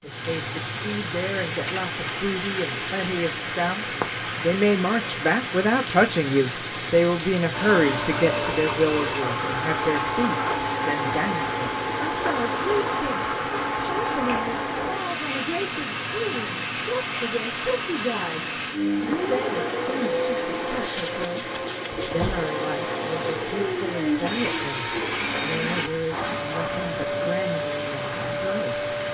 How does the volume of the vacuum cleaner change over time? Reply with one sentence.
The volume of the vacuum cleaner stays about the same.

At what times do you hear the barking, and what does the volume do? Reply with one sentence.
You can't hear the barking here.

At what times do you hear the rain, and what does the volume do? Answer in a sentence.
The rain can be heard from 0.0 to 29.1 s, getting quieter.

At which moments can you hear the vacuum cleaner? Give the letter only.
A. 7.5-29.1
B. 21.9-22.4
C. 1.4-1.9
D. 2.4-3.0
A.